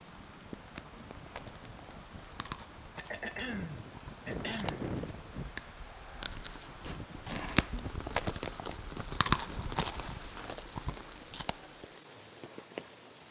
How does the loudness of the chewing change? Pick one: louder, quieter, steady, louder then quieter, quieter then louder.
louder then quieter.